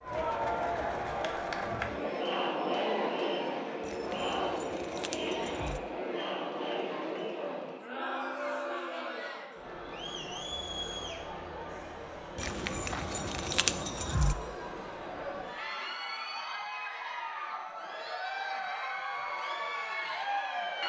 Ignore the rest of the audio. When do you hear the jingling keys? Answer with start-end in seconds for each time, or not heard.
3.8-5.8, 12.3-14.3.